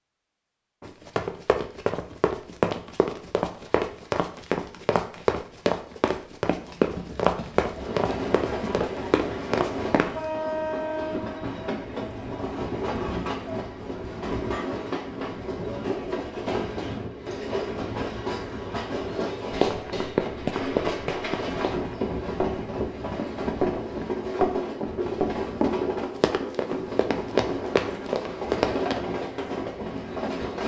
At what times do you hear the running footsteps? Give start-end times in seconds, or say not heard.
0.8-10.3, 19.5-29.1.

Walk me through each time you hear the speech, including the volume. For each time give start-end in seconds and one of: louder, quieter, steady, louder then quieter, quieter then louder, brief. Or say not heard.
not heard.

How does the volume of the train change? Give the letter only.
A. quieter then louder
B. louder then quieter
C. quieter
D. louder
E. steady
E.